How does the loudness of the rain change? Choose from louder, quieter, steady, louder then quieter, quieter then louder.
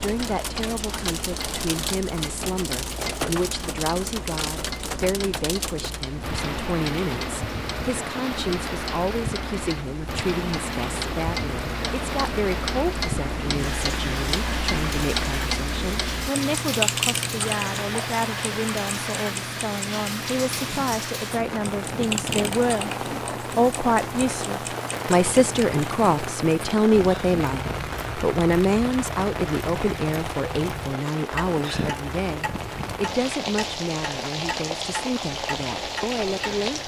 steady.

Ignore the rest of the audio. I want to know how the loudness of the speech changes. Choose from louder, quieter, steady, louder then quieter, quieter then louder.
louder then quieter.